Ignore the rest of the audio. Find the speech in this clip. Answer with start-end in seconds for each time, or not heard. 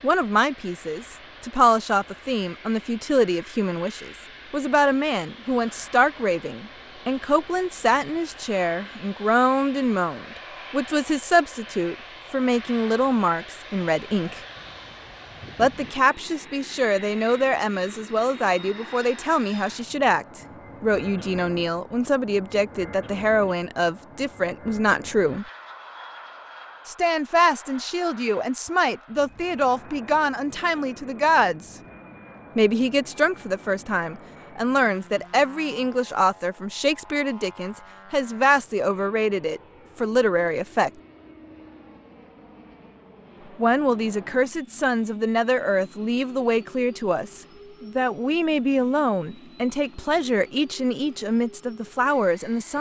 0.0-14.4, 15.6-25.4, 26.9-31.8, 32.5-40.9, 43.5-52.7.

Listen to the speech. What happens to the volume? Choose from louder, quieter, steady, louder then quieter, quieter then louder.
steady.